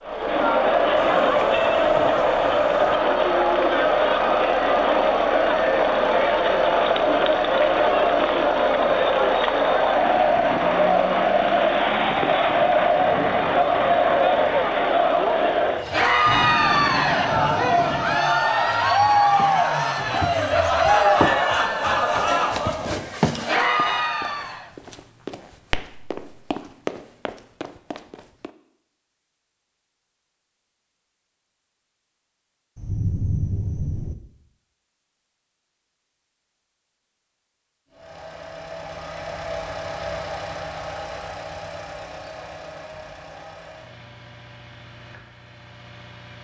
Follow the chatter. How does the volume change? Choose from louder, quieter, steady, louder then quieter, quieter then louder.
steady.